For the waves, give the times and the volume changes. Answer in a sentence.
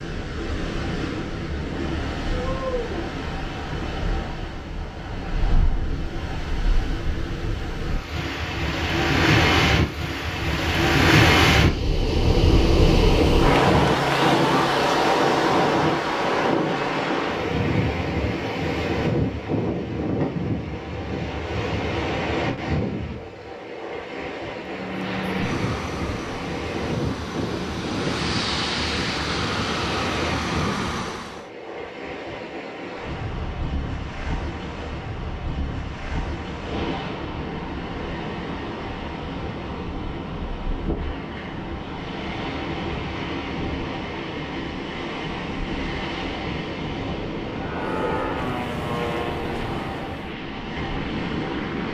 You can hear the waves from 0.0 to 51.8 s, getting louder then quieter.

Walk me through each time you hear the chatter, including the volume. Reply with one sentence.
You can't hear the chatter here.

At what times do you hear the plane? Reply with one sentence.
The plane can be heard from 24.6 to 31.5 s and from 47.5 to 51.8 s.